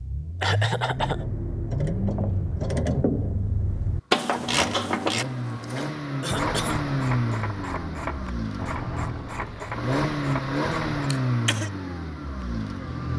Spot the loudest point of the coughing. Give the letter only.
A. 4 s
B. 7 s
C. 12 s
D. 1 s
D.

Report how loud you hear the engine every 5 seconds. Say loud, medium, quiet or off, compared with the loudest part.
medium, loud, loud.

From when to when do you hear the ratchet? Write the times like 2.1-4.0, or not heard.
0.9-11.1.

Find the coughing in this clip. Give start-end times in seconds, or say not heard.
0.4-1.2, 5.7-6.8, 11.1-11.7.